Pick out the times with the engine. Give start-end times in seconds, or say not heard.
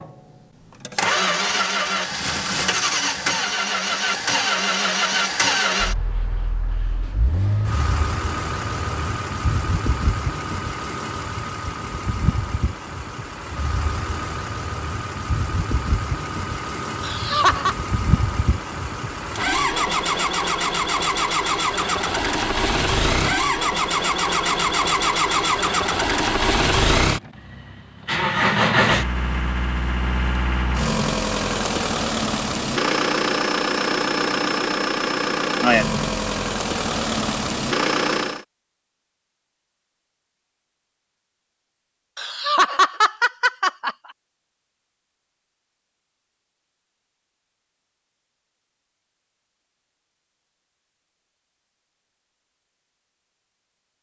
0.0-38.5.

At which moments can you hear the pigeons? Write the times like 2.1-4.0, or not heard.
not heard.